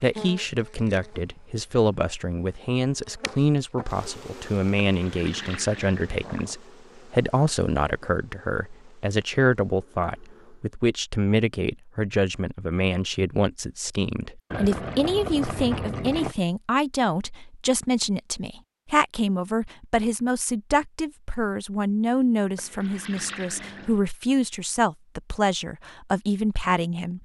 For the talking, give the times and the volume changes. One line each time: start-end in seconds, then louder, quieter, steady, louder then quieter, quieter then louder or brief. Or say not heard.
0.0-27.2 steady.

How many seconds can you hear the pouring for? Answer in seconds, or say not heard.
5 s.